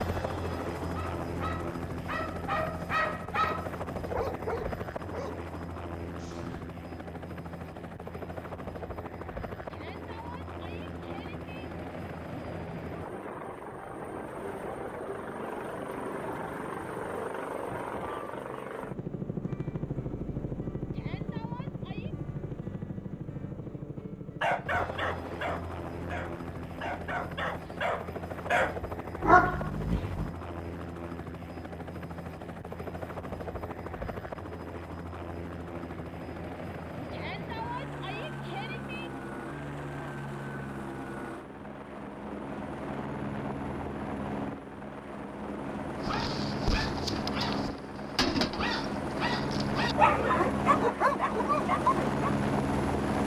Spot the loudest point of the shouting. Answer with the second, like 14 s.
38 s.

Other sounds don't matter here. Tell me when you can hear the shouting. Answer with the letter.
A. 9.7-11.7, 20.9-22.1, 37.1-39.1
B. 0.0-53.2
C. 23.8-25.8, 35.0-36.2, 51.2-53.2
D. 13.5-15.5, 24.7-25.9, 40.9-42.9
A.